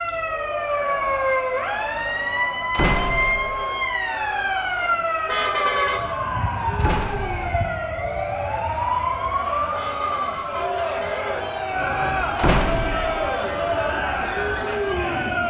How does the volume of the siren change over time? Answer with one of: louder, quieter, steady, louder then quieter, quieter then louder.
quieter.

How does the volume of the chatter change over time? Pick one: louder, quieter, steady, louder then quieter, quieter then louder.
louder.